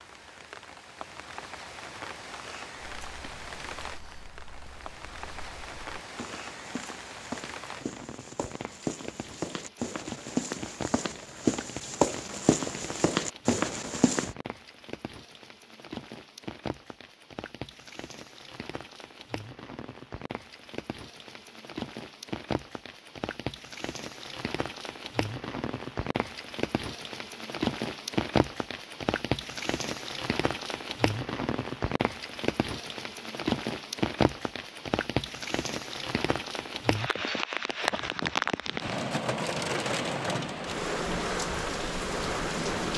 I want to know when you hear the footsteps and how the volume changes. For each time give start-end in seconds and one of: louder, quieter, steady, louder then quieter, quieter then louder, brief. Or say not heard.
3.0-14.3 louder.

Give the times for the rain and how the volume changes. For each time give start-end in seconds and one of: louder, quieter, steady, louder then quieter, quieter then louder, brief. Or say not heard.
0.0-42.9 louder.